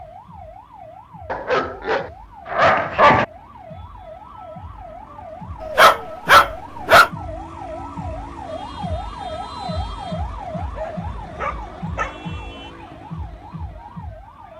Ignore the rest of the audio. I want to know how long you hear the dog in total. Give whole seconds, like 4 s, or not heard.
5 s.